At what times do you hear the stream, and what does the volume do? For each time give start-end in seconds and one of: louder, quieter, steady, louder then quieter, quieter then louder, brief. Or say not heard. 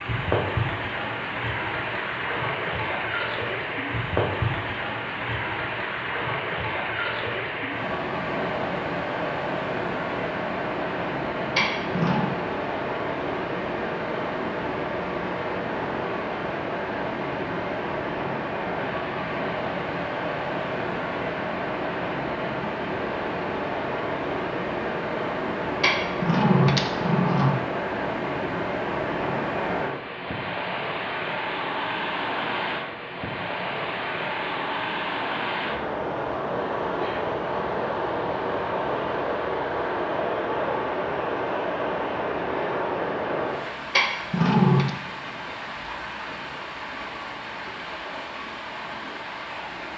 0.0-49.9 steady.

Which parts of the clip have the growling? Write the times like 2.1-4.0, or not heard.
11.6-12.3, 25.8-27.6, 44.0-44.9.